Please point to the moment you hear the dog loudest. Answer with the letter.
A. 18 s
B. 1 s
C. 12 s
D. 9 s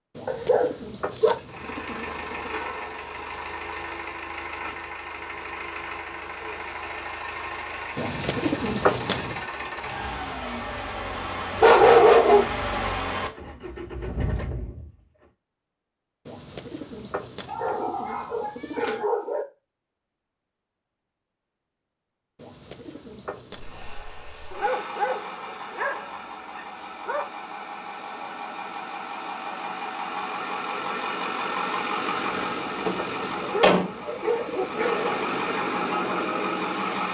C.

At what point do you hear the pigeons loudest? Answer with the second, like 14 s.
9 s.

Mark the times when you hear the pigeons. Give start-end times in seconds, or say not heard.
0.1-2.5, 8.0-9.4, 16.2-19.1, 22.4-23.9, 32.2-34.9.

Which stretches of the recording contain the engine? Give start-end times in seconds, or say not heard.
1.4-15.2, 23.5-37.0.